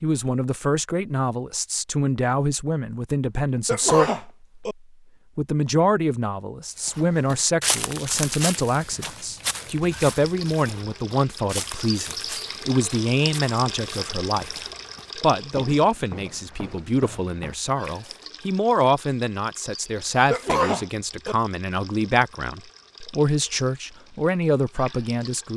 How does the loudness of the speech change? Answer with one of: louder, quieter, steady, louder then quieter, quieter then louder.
steady.